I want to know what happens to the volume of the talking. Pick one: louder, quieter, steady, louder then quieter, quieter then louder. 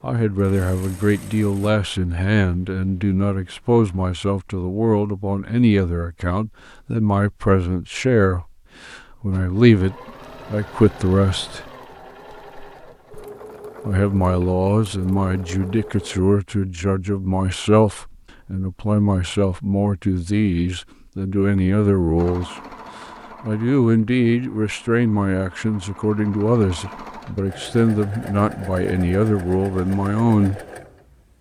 steady.